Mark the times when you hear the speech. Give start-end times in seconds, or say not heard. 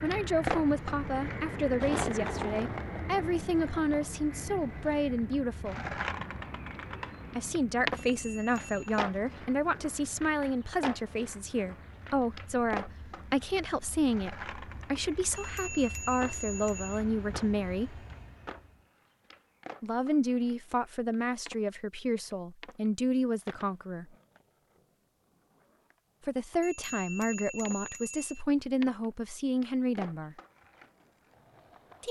0.0-5.8, 7.3-18.1, 19.8-24.1, 26.2-30.4.